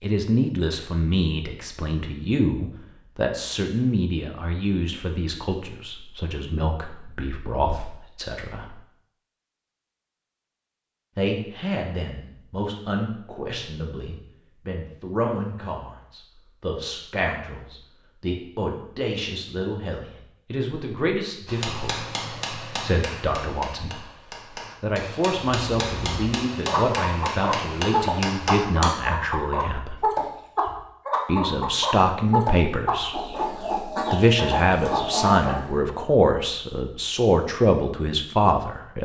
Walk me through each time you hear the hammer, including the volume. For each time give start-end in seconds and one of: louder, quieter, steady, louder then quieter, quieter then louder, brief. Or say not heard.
21.4-29.1 quieter then louder.